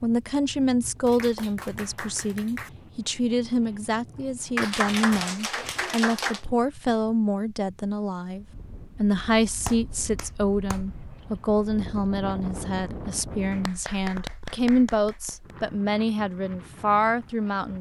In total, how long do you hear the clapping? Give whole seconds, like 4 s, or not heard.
7 s.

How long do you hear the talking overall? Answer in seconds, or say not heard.
18 s.